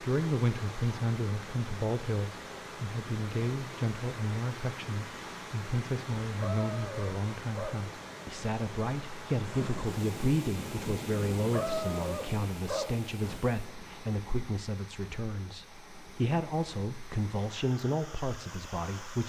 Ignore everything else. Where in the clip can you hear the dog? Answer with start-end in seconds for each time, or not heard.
6.3-7.8, 11.3-13.4.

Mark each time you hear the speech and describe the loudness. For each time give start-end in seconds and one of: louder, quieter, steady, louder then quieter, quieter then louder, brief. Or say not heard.
0.0-19.2 steady.